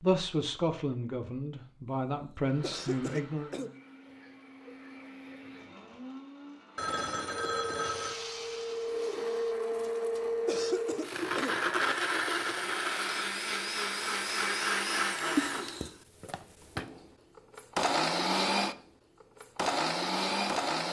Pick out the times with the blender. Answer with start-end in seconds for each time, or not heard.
2.4-20.8.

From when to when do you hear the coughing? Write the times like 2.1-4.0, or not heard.
1.9-3.7, 9.7-11.6, 15.3-15.9.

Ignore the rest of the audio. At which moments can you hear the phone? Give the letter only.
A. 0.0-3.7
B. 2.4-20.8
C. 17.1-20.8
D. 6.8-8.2
D.